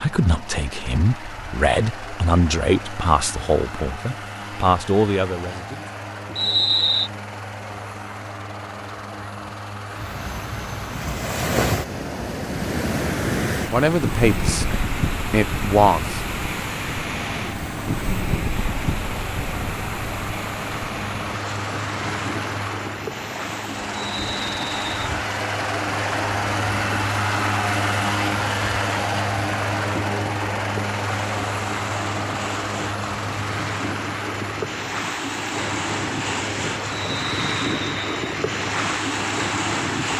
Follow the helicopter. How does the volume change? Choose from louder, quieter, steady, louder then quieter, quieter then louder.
louder then quieter.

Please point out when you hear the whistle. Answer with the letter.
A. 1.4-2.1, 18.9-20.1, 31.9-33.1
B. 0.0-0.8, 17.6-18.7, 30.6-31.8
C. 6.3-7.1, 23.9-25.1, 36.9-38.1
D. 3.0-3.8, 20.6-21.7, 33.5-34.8
C.